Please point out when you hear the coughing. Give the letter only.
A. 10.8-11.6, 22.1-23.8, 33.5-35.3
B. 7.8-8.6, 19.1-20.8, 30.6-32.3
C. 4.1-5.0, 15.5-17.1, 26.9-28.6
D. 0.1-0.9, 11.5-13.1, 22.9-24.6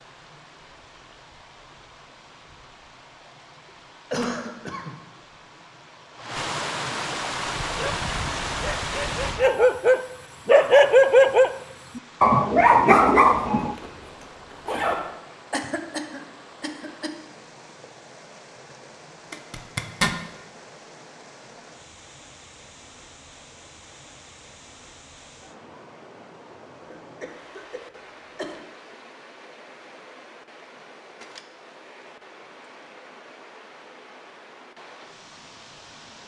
C.